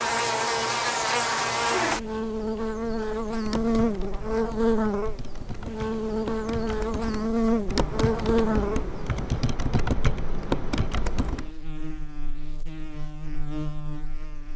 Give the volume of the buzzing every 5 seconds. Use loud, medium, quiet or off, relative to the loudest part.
loud, loud, quiet.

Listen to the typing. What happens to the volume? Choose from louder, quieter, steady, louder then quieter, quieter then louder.
louder.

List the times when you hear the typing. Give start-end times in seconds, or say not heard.
3.4-11.5.